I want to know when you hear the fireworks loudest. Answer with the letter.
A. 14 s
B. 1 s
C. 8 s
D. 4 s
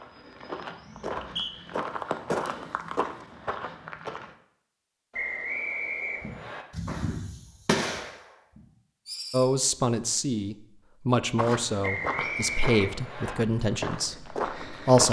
C.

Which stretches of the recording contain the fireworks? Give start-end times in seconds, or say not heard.
6.2-9.5.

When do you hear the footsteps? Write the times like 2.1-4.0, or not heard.
0.0-4.3, 11.3-15.0.